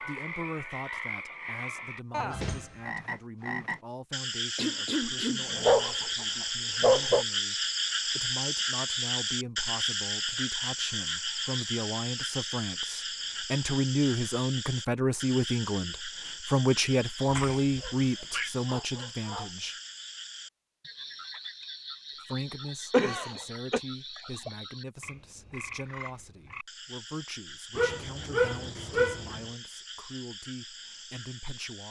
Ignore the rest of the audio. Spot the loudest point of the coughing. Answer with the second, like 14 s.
23 s.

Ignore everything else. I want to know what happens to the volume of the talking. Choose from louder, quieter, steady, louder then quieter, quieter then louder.
louder then quieter.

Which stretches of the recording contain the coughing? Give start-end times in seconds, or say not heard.
4.5-5.5, 17.2-18.5, 22.9-23.8.